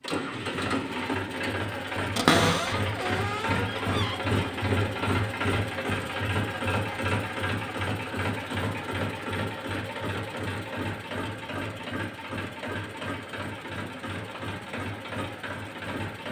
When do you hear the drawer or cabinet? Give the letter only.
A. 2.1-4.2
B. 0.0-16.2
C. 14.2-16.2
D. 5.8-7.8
A.